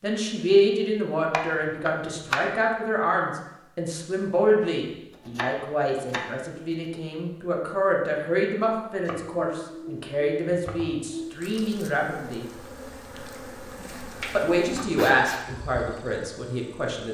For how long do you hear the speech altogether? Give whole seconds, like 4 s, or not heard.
15 s.